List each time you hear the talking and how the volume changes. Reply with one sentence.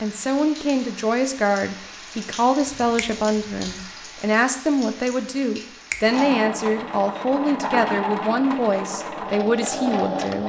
The talking can be heard from 0.0 to 10.4 s, at a steady volume.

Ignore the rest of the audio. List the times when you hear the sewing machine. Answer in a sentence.
You can hear the sewing machine from 6.0 to 10.4 s.